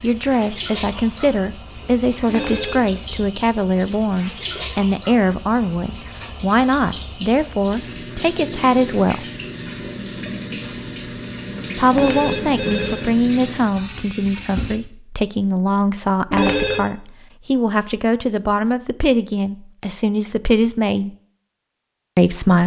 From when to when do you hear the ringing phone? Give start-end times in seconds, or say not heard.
2.2-3.0, 11.9-13.1, 16.3-16.9.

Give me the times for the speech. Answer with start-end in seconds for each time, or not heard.
0.0-9.2, 11.8-21.1, 22.1-22.6.